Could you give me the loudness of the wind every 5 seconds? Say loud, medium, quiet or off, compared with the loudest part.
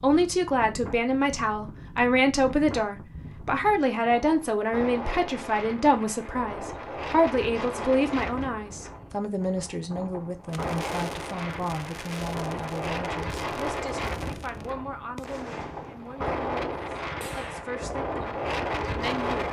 medium, medium, loud, loud.